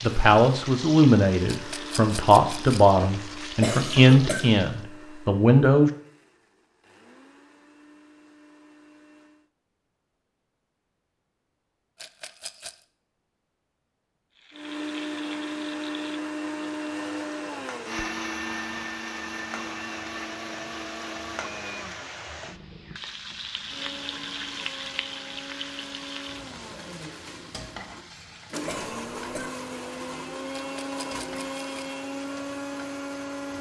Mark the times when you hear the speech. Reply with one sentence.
You can hear the speech from 0.0 to 5.9 s.